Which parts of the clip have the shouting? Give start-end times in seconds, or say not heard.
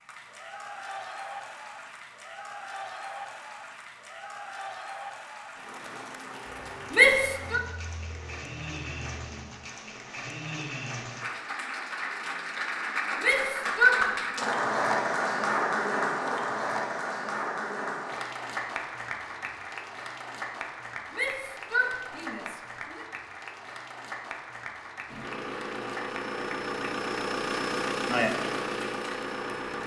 6.9-7.6, 13.2-14.0, 21.1-23.1.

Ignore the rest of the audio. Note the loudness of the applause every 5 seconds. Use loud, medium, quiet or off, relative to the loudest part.
medium, medium, loud, loud, medium, medium.